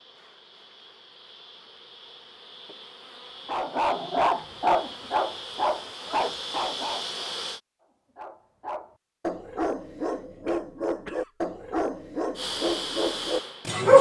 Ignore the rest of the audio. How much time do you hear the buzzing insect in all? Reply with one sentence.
You can hear the buzzing insect for 9 seconds altogether.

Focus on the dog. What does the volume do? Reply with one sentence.
The volume of the dog goes down, then up.